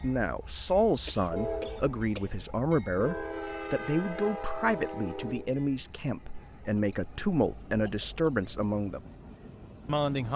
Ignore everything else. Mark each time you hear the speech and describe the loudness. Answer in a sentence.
The speech can be heard from 0.0 to 9.1 s, at a steady volume; and briefly from 9.8 to 10.3 s.